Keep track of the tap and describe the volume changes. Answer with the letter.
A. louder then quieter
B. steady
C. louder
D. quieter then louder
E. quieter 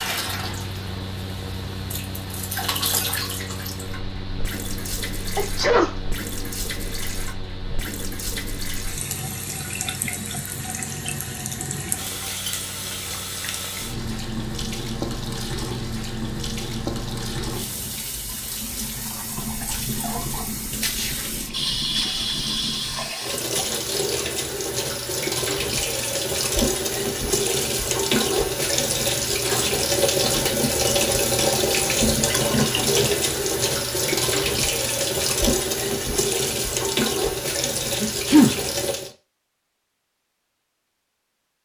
C.